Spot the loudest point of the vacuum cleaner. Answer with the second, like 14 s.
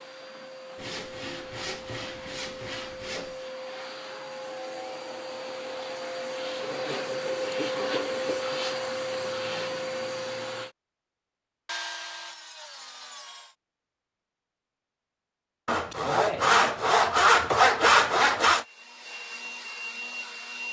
8 s.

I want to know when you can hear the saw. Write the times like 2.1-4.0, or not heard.
0.8-3.5, 6.6-8.5, 11.7-13.6, 15.7-18.6.